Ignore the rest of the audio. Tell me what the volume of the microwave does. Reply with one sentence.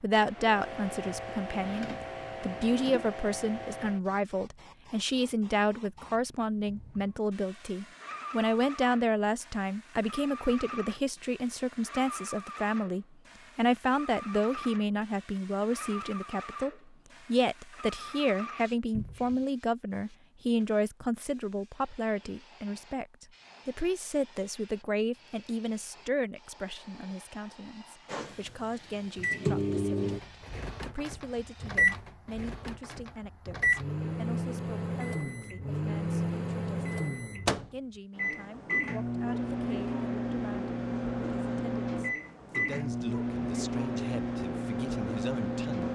The volume of the microwave stays about the same.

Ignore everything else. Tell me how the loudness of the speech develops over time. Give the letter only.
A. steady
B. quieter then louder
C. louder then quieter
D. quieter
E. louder
D.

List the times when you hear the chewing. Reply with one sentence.
The chewing can't be heard in this clip.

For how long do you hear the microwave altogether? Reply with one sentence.
The microwave can be heard for 18 seconds in total.